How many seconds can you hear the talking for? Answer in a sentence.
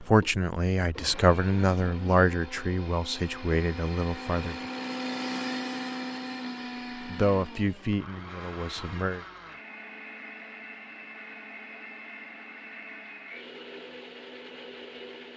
You can hear the talking for 7 seconds altogether.